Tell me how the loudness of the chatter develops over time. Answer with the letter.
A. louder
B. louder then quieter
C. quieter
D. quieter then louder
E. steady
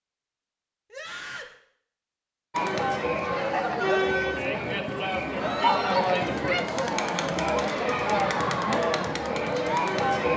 E.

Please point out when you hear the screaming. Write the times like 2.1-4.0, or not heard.
0.9-1.6, 5.3-6.0.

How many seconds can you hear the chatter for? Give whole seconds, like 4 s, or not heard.
8 s.